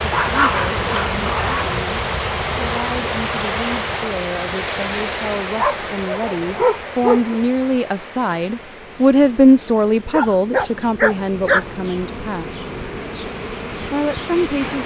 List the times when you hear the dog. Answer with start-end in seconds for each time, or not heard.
0.1-1.8, 5.5-7.4, 10.1-11.7.